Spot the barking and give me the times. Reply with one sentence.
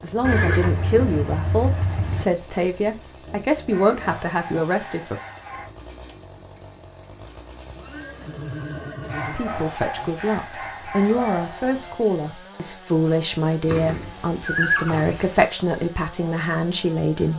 You can hear the barking from 3.6 to 5.7 s and from 9.1 to 12.1 s.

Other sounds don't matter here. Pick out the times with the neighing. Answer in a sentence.
The neighing can be heard from 0.2 to 2.2 s, from 7.2 to 9.4 s and from 13.7 to 15.4 s.